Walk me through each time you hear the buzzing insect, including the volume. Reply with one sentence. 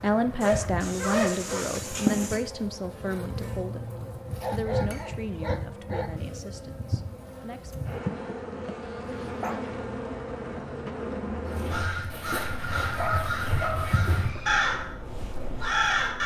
The buzzing insect can be heard from 0.0 to 16.2 s, getting quieter.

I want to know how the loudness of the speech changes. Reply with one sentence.
The loudness of the speech goes down.